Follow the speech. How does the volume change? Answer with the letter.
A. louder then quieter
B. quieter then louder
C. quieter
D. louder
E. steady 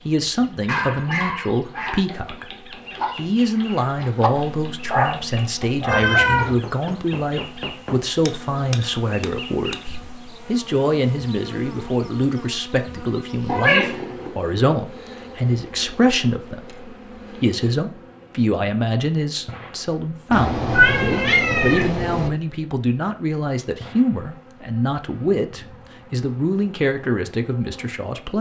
E.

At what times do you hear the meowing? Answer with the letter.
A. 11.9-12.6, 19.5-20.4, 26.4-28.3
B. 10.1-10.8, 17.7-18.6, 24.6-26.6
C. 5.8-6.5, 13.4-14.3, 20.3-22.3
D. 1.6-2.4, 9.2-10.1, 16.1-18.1
C.